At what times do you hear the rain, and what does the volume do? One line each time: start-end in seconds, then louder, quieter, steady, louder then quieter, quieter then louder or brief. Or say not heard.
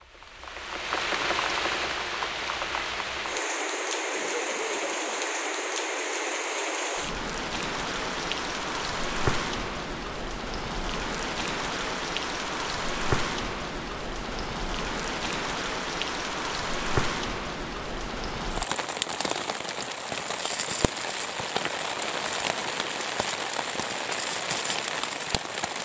0.0-25.7 steady.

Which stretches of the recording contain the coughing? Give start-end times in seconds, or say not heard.
4.1-5.2.